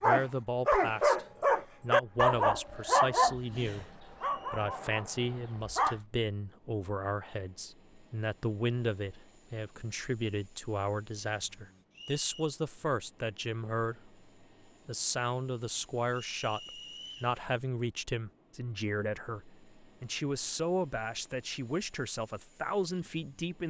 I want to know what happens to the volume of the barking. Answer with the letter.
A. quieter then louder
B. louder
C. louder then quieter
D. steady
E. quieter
E.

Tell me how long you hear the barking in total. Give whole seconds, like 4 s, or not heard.
6 s.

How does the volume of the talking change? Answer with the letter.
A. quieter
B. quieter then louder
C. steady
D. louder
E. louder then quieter
C.